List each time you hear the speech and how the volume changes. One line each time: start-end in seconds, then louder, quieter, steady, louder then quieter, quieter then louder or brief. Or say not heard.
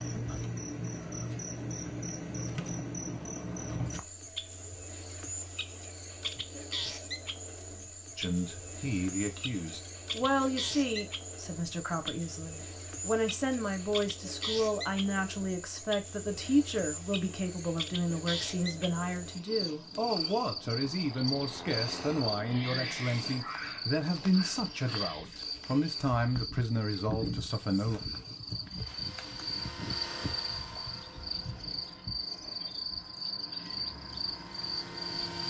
8.2-28.0 steady.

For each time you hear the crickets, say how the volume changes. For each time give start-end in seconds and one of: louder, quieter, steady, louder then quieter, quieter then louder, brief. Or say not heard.
0.0-35.4 steady.